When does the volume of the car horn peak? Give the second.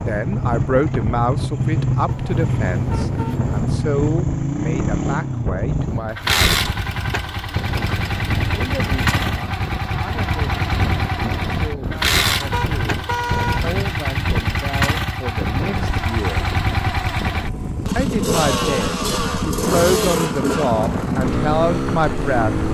13 s.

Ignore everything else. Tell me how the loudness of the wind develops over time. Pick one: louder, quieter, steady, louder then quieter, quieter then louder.
steady.